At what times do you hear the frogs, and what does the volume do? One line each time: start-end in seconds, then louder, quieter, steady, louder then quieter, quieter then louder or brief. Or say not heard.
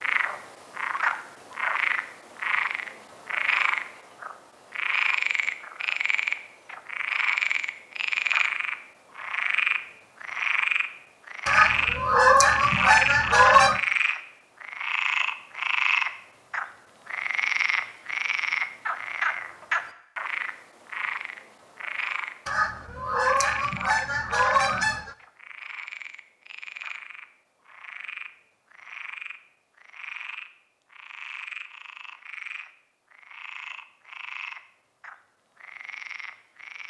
0.0-36.8 quieter.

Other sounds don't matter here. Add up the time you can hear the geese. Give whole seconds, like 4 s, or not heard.
5 s.